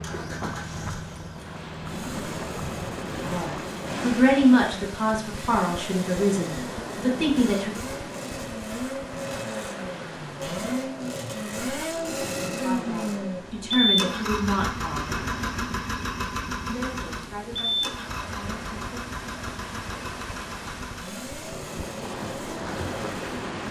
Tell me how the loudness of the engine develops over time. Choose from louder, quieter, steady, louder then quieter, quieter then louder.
louder then quieter.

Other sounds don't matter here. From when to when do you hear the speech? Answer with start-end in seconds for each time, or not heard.
3.3-7.7, 12.5-15.2, 16.6-19.0.